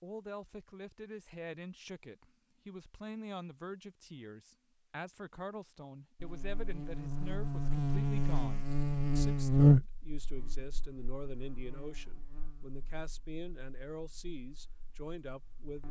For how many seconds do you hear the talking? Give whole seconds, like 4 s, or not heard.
16 s.